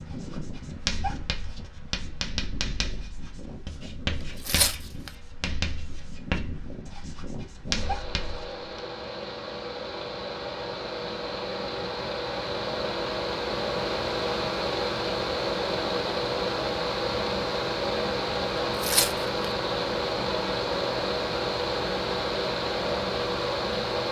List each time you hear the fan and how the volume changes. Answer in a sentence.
You can hear the fan from 0.0 to 24.0 s, getting louder.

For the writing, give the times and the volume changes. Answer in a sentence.
The writing can be heard from 0.0 to 8.6 s, at a steady volume.